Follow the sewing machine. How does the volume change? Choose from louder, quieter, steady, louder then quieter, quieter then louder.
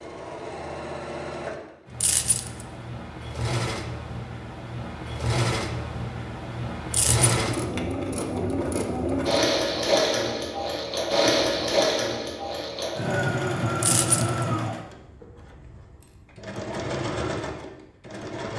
louder then quieter.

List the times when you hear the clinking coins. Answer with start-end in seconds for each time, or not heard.
2.0-2.6, 6.9-7.3, 13.8-14.4.